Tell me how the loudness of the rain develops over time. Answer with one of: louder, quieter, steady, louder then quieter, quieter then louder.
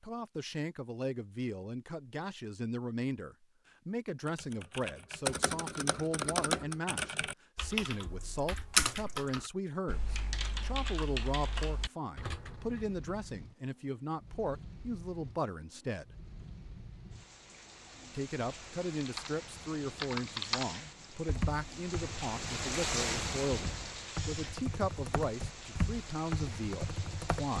louder then quieter.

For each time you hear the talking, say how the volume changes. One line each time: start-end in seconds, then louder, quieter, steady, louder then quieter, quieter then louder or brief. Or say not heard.
0.0-16.1 steady
18.1-27.5 steady.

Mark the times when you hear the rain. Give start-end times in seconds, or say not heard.
11.8-27.5.